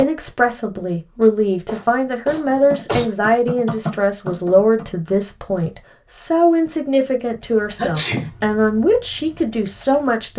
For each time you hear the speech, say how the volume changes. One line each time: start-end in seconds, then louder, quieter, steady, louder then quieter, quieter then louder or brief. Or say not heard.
0.0-10.3 steady.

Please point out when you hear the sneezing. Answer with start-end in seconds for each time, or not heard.
1.2-3.1, 7.8-8.3.